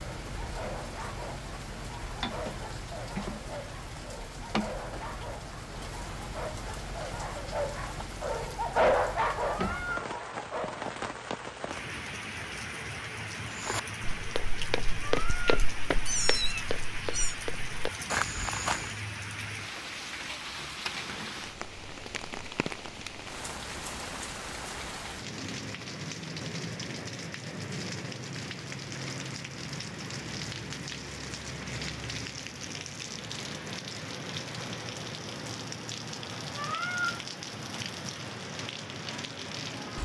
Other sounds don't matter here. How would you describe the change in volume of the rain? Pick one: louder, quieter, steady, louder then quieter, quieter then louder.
steady.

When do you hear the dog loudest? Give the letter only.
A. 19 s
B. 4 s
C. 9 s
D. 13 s
C.